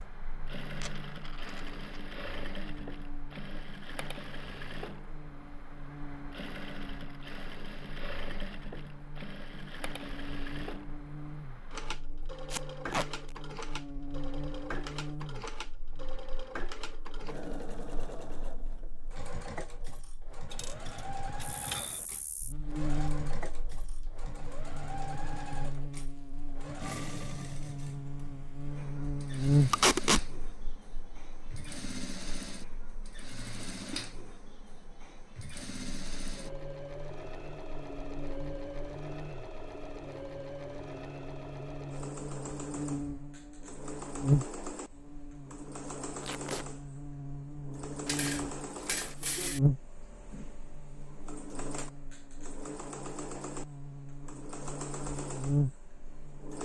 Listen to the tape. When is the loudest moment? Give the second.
30 s.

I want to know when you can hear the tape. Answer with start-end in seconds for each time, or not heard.
12.5-13.1, 29.7-30.2, 46.2-46.6.